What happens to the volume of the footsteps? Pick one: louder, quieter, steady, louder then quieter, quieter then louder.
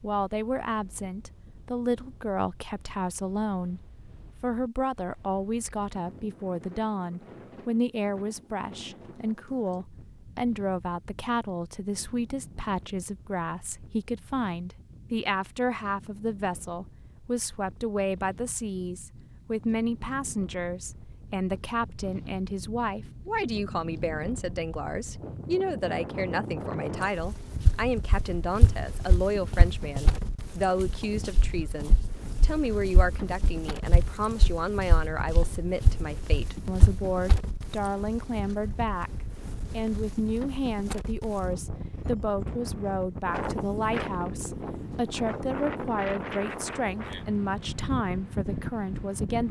quieter then louder.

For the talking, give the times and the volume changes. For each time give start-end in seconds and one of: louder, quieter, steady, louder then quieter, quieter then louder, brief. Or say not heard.
0.0-49.4 steady.